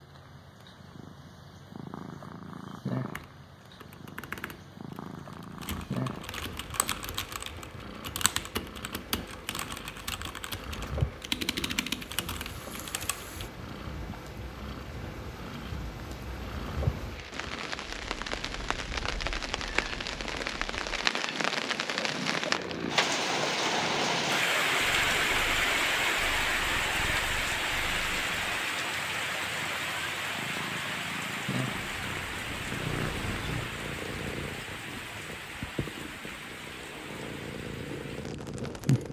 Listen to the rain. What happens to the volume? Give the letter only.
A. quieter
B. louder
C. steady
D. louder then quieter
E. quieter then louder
D.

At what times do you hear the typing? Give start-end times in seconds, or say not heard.
3.0-13.5.